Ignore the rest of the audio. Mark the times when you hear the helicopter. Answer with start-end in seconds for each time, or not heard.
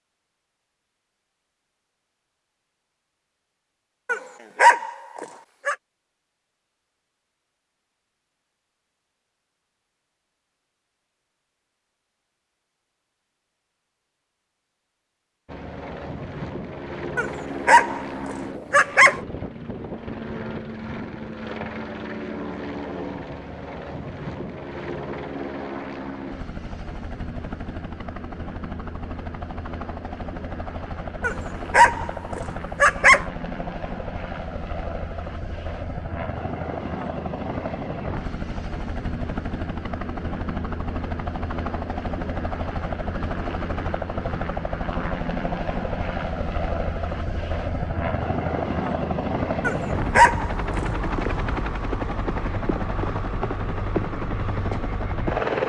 15.4-55.6.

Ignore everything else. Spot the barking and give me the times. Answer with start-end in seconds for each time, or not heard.
4.0-5.8, 17.1-19.2, 31.2-33.2, 49.6-50.8.